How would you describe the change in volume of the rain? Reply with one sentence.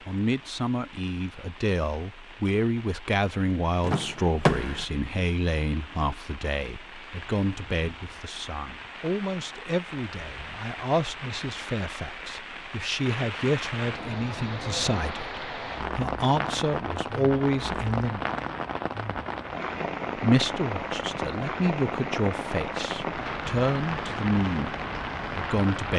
The volume of the rain goes up.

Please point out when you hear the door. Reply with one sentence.
You can hear the door from 3.8 to 4.8 s.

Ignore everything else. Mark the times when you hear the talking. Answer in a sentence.
You can hear the talking from 0.1 to 18.2 s, from 20.1 to 24.8 s and from 25.4 to 25.9 s.